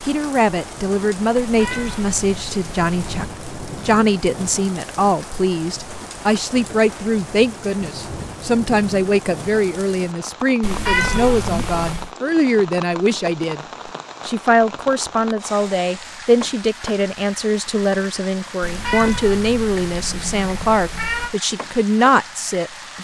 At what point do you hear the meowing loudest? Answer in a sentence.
The volume of the meowing peaks at 11 seconds.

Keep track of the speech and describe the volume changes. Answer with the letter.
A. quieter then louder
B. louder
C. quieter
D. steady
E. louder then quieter
D.